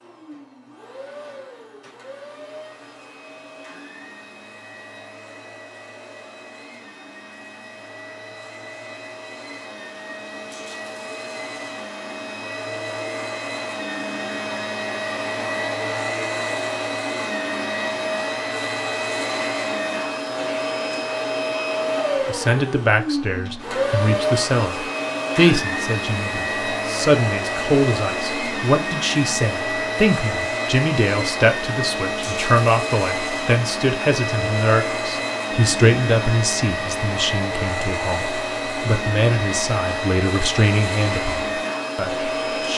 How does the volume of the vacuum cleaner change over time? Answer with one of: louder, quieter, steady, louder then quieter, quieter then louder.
louder.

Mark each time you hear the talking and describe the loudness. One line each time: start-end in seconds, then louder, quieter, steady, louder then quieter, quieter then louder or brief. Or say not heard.
22.2-42.7 steady.